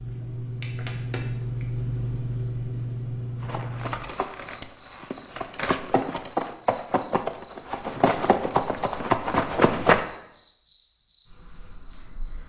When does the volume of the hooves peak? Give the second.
10 s.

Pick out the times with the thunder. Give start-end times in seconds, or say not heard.
not heard.